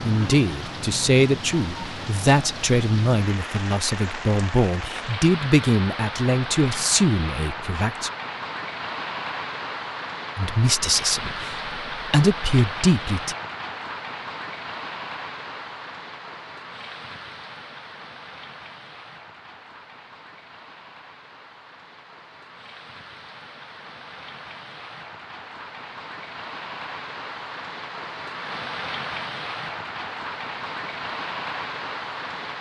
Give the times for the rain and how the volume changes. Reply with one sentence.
The rain can be heard from 0.0 to 32.5 s, getting quieter then louder.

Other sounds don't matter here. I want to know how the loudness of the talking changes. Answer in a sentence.
The loudness of the talking stays about the same.